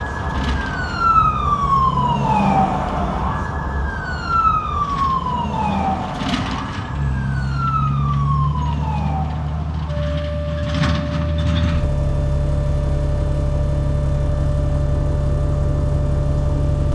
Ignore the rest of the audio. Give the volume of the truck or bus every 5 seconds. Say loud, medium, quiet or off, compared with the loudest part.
medium, loud, loud, loud.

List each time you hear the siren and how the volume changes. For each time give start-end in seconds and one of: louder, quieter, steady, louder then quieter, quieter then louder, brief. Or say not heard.
0.0-16.9 quieter.